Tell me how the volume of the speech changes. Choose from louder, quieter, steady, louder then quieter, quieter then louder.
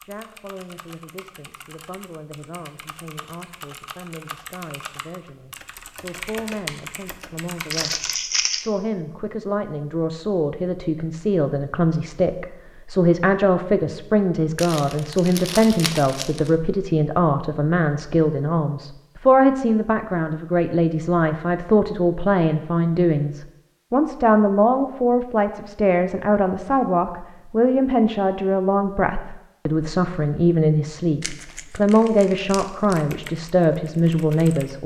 louder.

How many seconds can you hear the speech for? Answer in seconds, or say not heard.
35 s.